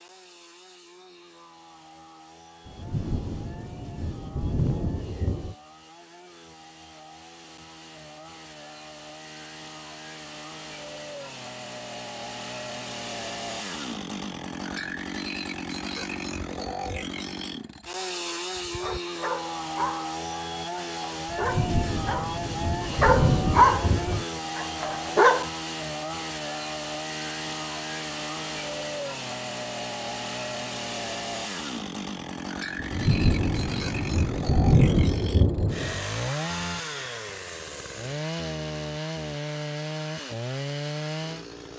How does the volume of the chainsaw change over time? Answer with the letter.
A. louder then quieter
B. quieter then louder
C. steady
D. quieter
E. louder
E.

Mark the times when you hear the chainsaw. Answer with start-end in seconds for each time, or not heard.
0.0-41.7.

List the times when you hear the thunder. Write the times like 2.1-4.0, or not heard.
2.6-5.5, 21.2-24.2, 32.8-36.0.